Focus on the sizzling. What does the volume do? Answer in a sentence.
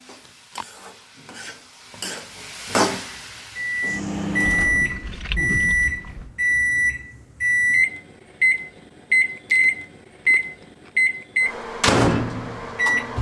The loudness of the sizzling goes up, then down.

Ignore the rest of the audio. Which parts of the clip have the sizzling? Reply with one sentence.
You can hear the sizzling from 0.0 to 4.4 s.